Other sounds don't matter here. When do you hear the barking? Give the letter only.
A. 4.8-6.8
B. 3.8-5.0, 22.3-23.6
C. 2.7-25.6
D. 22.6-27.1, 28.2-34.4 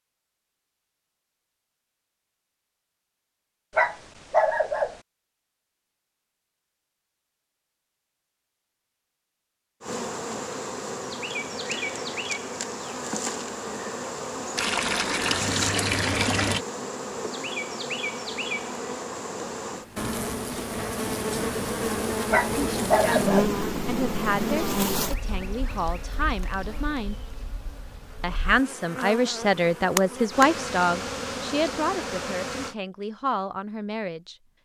B.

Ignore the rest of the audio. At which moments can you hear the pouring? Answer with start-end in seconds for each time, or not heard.
14.6-16.6.